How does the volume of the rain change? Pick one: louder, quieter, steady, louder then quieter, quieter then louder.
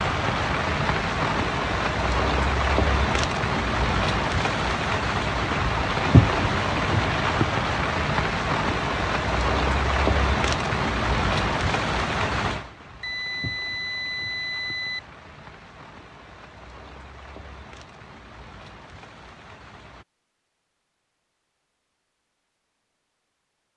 quieter.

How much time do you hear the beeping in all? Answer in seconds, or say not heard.
2 s.